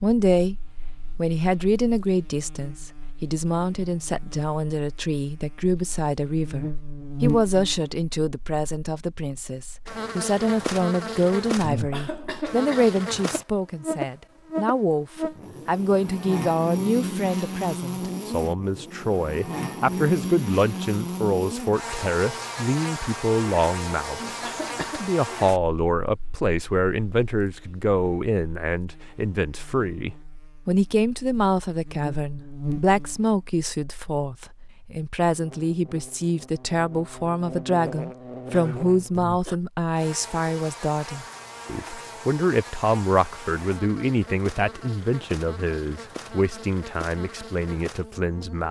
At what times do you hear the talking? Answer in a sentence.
You can hear the talking from 0.0 to 0.6 s and from 1.1 to 48.6 s.